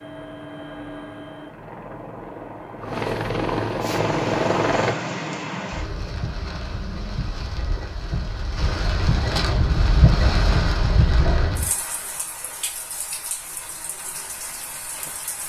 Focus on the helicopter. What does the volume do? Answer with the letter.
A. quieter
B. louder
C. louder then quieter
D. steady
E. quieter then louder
B.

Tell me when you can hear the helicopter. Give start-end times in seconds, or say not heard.
0.0-5.0.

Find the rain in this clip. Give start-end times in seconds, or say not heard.
3.8-15.4.